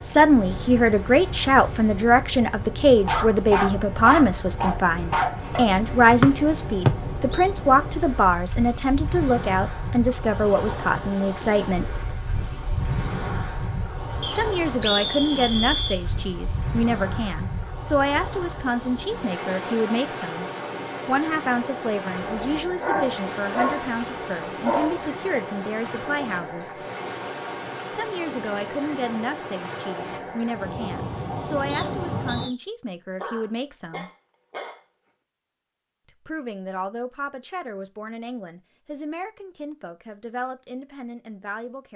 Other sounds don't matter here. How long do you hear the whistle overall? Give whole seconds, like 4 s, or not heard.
3 s.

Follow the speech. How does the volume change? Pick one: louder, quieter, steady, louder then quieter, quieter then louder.
quieter.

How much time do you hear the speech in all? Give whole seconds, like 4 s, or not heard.
36 s.